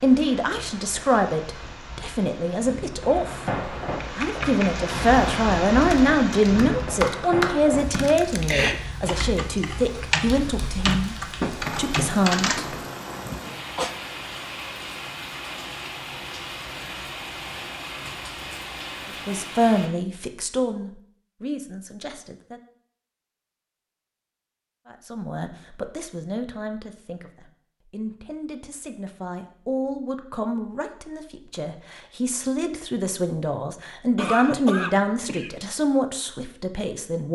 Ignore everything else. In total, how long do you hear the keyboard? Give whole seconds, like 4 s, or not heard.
9 s.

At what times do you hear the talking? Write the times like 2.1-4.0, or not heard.
0.0-3.5, 4.2-11.2, 11.8-12.7, 19.1-22.6, 24.9-37.3.